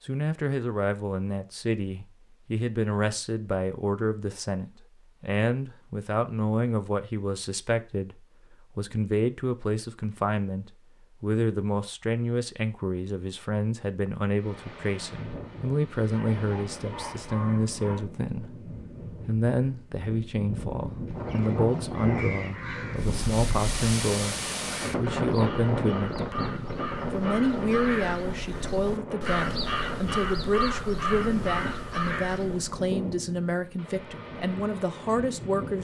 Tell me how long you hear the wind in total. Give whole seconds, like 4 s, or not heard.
21 s.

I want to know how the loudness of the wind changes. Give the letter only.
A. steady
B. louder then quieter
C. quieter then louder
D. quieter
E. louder
B.